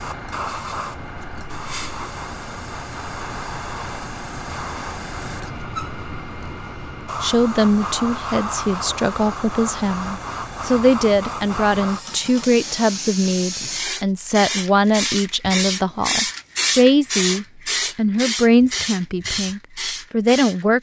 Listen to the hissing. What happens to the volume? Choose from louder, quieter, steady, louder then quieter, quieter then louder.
louder.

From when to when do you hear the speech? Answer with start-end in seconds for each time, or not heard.
7.2-20.7.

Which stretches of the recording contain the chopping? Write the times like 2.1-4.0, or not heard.
not heard.